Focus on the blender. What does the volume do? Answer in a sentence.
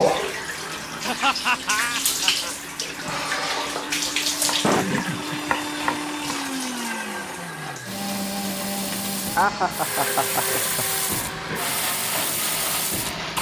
The loudness of the blender goes up.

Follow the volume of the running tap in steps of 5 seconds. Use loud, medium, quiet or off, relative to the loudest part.
loud, medium, medium.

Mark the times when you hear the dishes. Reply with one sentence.
You can't hear the dishes here.